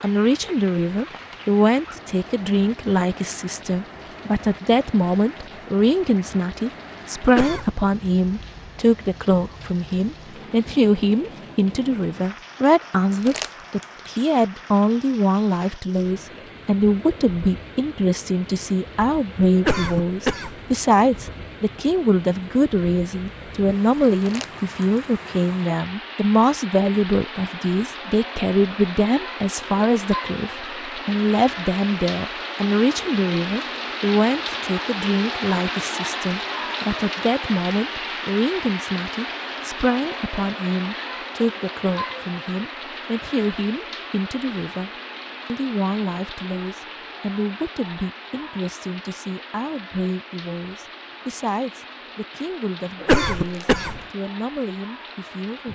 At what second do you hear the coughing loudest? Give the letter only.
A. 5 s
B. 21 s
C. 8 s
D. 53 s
D.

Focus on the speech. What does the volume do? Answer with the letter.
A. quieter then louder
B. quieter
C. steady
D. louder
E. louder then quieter
B.